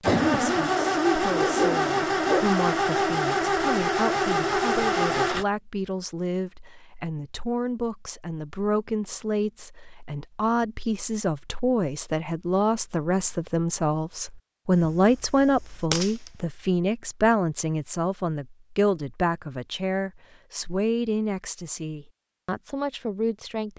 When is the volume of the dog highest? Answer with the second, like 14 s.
2 s.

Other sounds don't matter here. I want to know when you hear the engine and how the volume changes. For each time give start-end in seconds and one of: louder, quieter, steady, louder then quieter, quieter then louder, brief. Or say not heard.
0.0-5.5 steady.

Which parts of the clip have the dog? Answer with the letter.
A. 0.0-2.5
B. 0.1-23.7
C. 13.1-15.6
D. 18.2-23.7
A.